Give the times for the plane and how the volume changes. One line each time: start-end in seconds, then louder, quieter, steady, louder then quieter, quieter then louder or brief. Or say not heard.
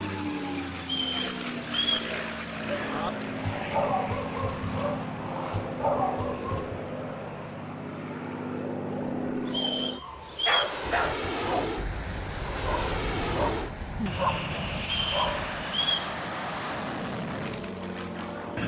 0.0-18.6 steady.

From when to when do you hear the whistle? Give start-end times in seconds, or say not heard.
0.8-2.1, 9.4-10.8, 14.8-16.1.